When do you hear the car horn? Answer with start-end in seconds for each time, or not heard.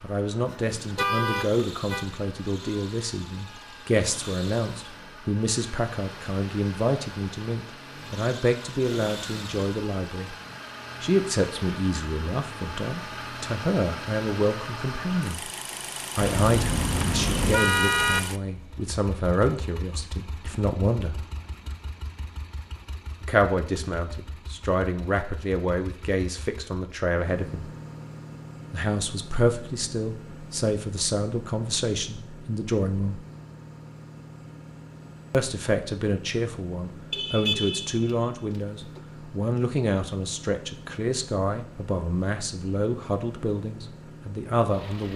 0.9-2.0, 16.2-18.2, 37.1-38.1.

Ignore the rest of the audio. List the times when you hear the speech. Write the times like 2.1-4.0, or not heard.
0.0-10.3, 11.0-15.4, 16.1-21.2, 23.2-27.7, 28.7-33.2, 35.3-45.1.